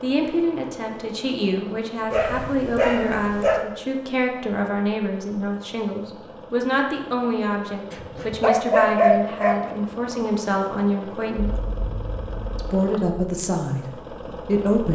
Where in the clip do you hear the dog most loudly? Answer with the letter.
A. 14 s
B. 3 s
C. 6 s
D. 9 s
D.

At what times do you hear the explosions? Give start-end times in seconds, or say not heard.
11.3-12.7.